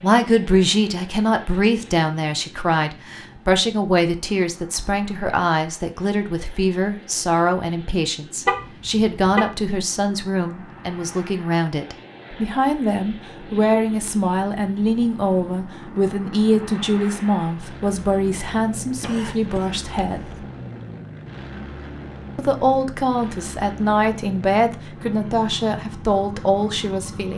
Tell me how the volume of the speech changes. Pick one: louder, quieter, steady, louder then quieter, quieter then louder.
steady.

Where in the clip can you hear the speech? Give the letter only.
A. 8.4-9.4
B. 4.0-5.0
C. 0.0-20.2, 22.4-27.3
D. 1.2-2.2
C.